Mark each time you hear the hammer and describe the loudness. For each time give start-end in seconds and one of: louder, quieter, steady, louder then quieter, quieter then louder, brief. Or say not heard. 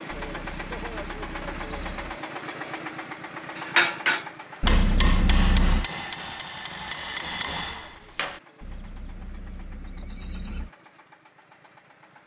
3.5-8.4 quieter.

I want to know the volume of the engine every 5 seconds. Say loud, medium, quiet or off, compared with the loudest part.
loud, quiet, quiet.